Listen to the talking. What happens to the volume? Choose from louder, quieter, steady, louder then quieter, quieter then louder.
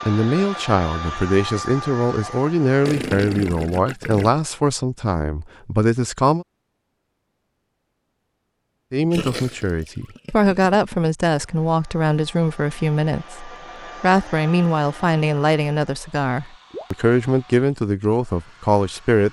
steady.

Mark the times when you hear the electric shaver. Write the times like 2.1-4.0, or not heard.
not heard.